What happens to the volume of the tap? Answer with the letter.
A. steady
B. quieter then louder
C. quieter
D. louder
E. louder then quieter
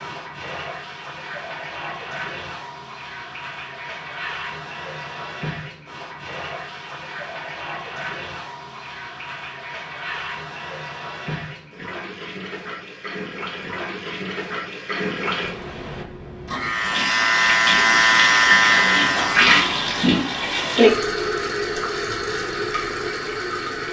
D.